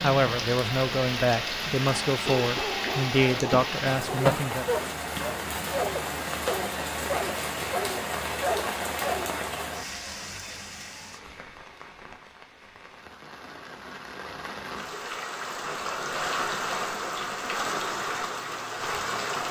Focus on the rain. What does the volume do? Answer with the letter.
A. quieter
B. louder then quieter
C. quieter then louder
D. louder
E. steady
C.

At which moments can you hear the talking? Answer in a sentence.
You can hear the talking from 0.0 to 4.7 s.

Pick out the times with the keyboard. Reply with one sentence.
The keyboard can't be heard in this clip.